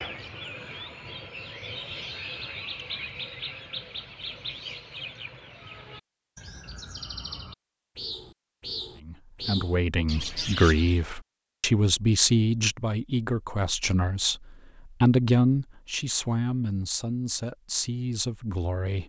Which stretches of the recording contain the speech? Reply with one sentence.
The speech can be heard from 9.0 to 19.0 s.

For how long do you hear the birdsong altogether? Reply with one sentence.
You can hear the birdsong for 11 seconds altogether.